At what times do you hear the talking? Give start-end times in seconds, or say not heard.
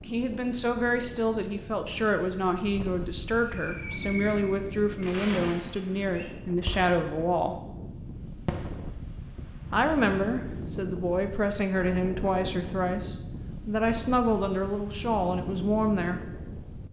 0.0-7.6, 9.7-16.2.